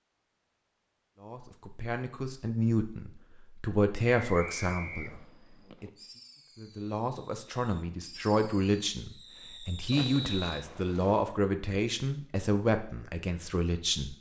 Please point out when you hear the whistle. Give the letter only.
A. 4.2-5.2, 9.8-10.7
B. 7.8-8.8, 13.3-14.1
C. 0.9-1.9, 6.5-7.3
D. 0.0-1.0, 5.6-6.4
A.